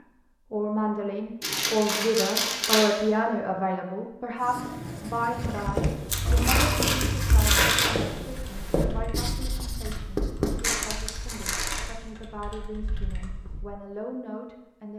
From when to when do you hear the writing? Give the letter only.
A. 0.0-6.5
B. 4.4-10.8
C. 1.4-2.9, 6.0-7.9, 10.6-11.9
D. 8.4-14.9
B.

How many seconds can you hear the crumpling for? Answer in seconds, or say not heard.
5 s.